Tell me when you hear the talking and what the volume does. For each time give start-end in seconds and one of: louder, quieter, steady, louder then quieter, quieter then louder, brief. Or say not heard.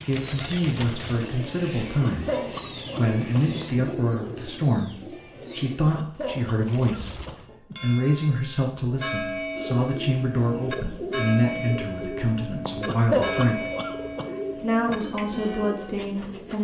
0.1-13.7 steady
14.6-16.5 brief.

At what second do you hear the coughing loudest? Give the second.
13 s.